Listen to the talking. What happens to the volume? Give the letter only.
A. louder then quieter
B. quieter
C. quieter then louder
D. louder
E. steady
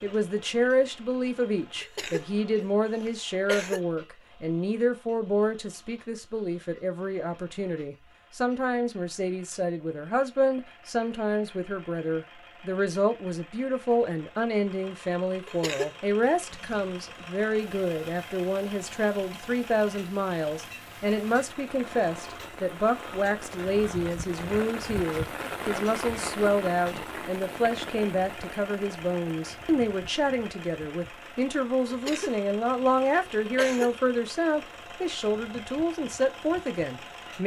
E.